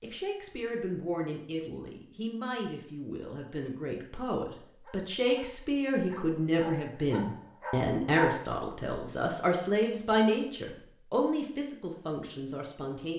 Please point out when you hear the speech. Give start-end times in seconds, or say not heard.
0.0-13.1.